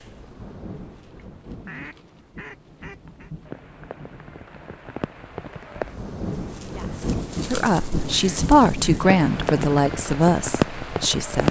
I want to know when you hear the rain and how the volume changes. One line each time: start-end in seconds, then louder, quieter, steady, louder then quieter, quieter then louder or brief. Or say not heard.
0.0-11.4 louder.